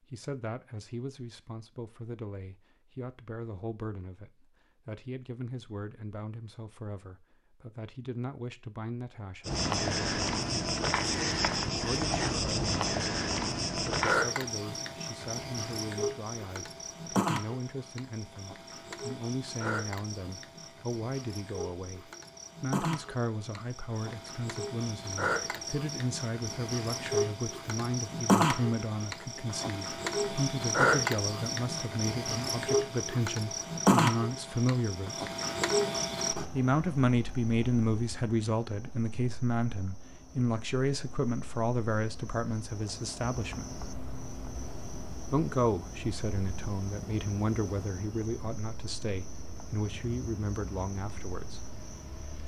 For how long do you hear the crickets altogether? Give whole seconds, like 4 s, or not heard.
43 s.